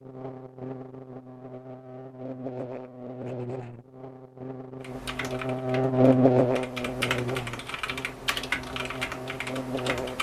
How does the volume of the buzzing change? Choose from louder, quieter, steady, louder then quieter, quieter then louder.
louder then quieter.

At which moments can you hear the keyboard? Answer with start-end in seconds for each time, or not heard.
4.8-10.1.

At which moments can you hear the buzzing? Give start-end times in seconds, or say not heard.
0.0-10.1.